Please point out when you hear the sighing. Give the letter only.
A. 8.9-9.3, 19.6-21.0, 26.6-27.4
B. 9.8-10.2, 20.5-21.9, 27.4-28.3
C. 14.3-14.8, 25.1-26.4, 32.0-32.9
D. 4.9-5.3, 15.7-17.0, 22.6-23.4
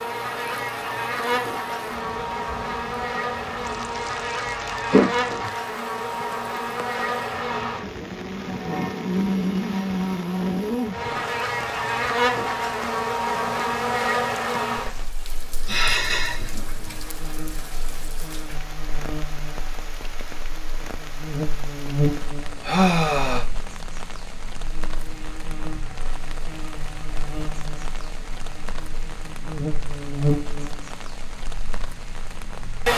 D.